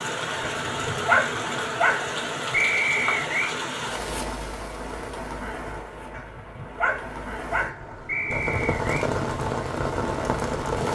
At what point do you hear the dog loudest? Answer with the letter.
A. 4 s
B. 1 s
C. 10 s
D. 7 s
B.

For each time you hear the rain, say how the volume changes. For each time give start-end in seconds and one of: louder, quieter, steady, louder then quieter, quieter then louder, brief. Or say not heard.
0.0-10.8 quieter then louder.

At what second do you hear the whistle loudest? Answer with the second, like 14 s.
3 s.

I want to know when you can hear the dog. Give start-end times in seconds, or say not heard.
0.7-2.1, 6.1-7.8.